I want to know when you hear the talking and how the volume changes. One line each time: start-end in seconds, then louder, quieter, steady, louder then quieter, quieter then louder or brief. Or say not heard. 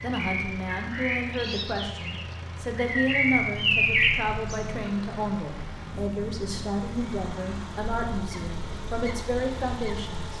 0.0-10.3 steady.